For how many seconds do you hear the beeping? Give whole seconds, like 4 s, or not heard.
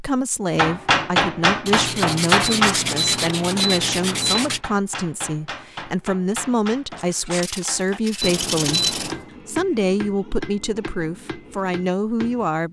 3 s.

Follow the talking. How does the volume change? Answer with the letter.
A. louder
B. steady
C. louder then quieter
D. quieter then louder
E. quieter
B.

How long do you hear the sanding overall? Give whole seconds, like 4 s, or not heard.
5 s.